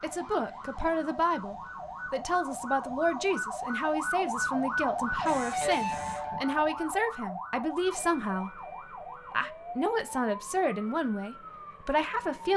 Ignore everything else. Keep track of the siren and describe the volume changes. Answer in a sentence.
The volume of the siren goes up, then down.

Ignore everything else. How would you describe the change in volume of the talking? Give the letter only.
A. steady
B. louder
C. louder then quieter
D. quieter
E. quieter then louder
A.